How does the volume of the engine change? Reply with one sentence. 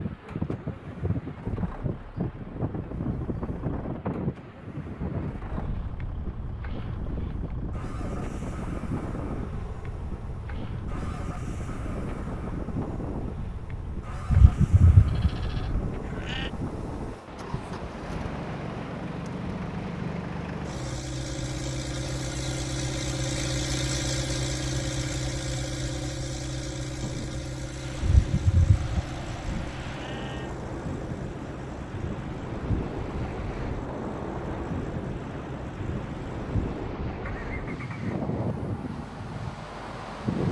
The volume of the engine goes up, then down.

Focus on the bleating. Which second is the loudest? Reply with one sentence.
The loudest moment of the bleating is at 15 seconds.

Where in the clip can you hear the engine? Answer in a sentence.
The engine can be heard from 0.0 to 40.4 s.